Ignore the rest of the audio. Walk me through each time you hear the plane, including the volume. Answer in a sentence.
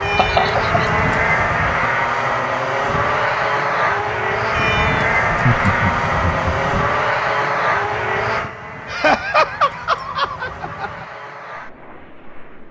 You can hear the plane from 0.0 to 12.6 s, getting quieter.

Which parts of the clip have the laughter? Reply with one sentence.
You can hear the laughter from 0.1 to 0.8 s, from 5.2 to 6.7 s and from 8.9 to 11.1 s.